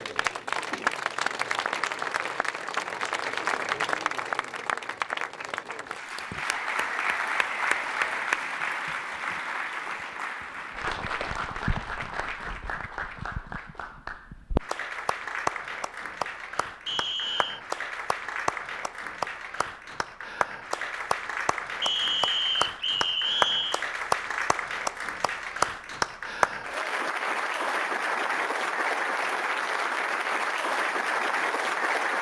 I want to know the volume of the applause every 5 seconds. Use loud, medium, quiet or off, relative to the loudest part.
loud, loud, medium, medium, loud, loud, loud.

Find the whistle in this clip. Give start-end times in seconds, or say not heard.
6.5-8.3, 16.9-17.6, 21.8-23.9.